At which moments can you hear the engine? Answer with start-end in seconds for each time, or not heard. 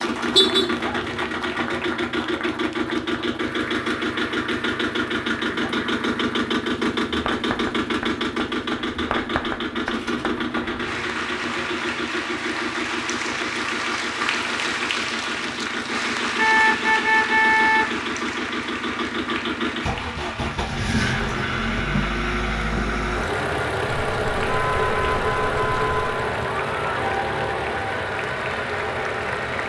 0.0-29.6.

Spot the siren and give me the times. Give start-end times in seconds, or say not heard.
not heard.